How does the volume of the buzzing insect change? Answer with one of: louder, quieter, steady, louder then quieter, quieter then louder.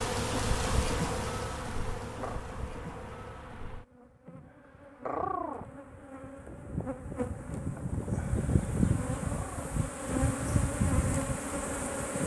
quieter then louder.